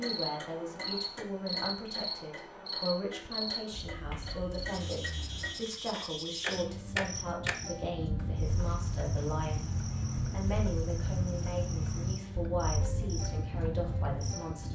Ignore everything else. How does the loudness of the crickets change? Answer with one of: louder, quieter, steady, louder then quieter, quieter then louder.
steady.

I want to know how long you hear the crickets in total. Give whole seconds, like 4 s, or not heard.
15 s.